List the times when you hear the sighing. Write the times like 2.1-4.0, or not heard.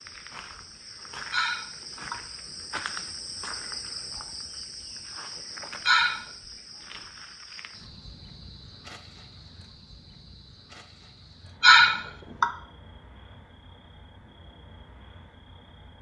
1.3-2.1, 5.8-6.2, 11.6-12.4.